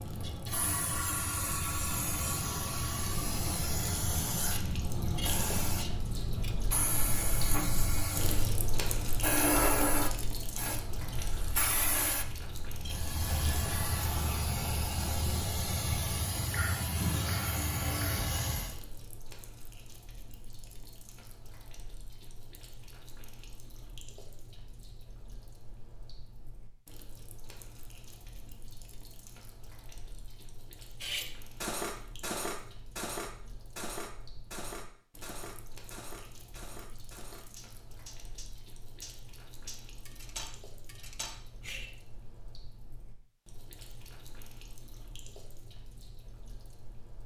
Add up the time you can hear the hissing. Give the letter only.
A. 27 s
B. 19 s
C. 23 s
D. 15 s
B.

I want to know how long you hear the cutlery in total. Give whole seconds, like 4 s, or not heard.
11 s.